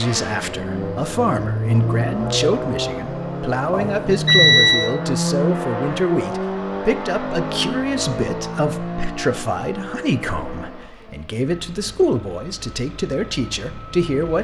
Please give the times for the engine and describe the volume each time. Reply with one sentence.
The engine can be heard from 0.0 to 14.3 s, getting quieter.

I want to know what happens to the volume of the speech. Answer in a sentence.
The loudness of the speech stays about the same.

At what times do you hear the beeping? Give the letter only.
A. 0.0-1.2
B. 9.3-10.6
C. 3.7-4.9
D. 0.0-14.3
C.